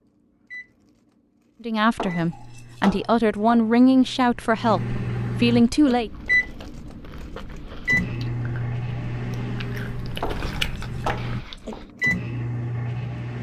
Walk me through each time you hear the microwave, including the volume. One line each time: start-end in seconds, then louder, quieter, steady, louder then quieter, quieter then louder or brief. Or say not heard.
0.0-13.3 louder.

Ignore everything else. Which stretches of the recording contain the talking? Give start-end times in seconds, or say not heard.
1.6-6.1.